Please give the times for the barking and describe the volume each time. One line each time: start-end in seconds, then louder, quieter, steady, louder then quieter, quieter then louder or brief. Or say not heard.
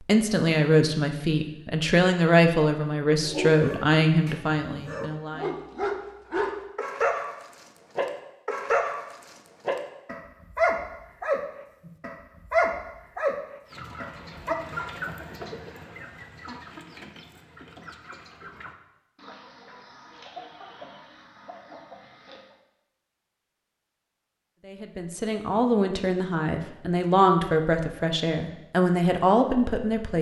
3.2-14.6 louder.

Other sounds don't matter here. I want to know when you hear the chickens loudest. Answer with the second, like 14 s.
15 s.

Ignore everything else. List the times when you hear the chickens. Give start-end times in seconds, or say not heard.
13.7-22.6.